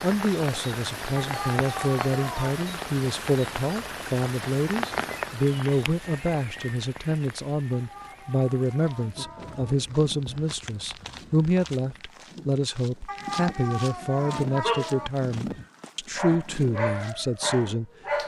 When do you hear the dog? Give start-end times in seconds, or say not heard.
14.6-18.2.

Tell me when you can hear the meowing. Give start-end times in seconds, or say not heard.
1.1-2.6, 7.7-9.8, 13.1-15.1.